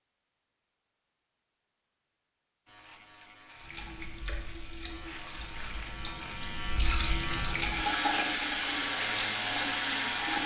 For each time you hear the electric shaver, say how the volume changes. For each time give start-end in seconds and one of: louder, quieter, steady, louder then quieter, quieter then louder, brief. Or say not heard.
2.6-10.4 louder.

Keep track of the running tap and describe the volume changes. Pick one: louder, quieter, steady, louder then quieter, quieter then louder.
louder.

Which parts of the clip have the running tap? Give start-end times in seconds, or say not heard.
3.5-10.4.